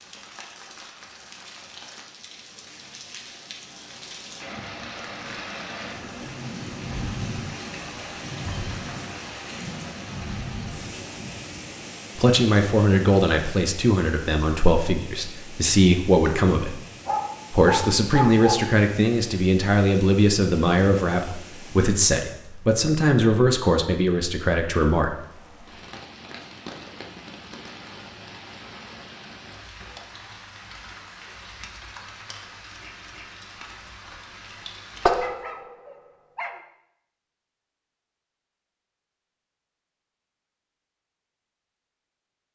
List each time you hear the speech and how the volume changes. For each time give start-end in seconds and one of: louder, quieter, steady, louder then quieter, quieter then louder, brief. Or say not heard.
12.2-16.8 quieter then louder
17.5-25.1 steady.